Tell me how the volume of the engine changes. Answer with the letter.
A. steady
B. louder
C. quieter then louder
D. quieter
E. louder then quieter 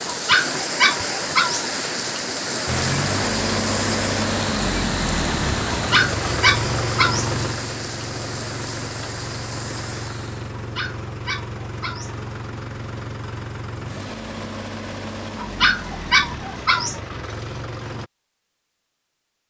D.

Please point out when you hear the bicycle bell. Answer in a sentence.
You can't hear the bicycle bell here.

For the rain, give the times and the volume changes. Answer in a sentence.
The rain can be heard from 0.0 to 10.6 s, getting quieter.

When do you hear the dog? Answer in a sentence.
You can hear the dog from 0.1 to 1.6 s, from 5.7 to 7.3 s, from 10.6 to 12.2 s and from 15.3 to 17.0 s.